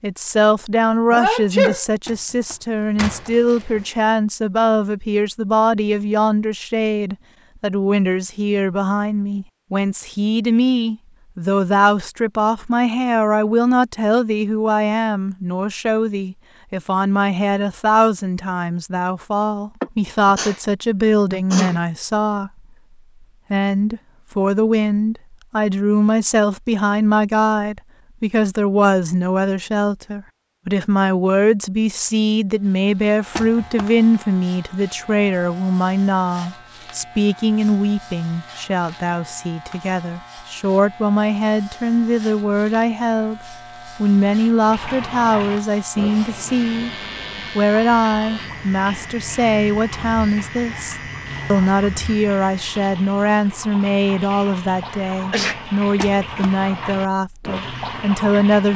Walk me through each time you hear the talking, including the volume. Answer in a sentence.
The talking can be heard from 0.0 to 22.5 s, at a steady volume; from 23.5 to 46.9 s, at a steady volume; and from 47.5 to 58.7 s, at a steady volume.